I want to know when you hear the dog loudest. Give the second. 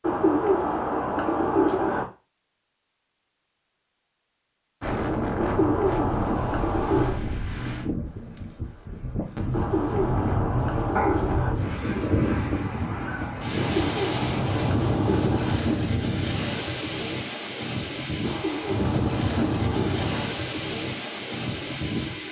11 s.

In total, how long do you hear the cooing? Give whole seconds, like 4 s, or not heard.
10 s.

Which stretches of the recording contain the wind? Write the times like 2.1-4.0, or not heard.
4.8-22.2.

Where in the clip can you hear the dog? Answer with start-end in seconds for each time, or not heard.
10.9-12.5.